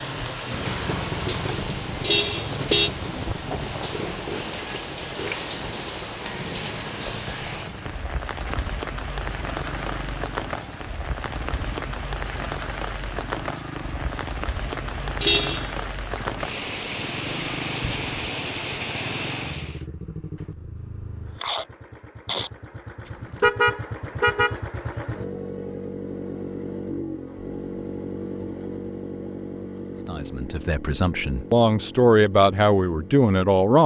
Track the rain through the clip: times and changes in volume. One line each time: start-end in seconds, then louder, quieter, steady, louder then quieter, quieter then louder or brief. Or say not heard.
0.0-19.9 steady.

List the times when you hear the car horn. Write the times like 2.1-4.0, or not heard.
2.0-2.9, 15.2-15.8, 23.1-24.6.